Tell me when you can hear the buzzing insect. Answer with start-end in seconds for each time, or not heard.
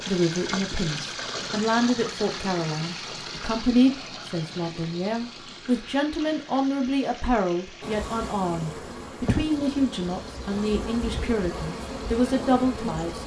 7.8-13.2.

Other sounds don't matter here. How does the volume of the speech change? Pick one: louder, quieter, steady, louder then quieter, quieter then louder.
steady.